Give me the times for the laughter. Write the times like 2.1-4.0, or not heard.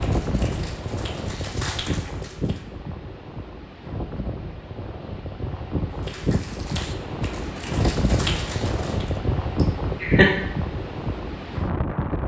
9.6-10.3.